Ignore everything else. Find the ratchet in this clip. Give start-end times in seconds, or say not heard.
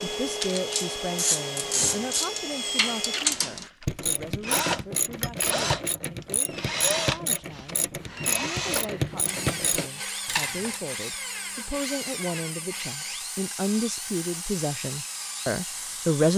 0.0-10.8.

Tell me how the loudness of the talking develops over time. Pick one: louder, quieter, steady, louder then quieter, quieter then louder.
quieter then louder.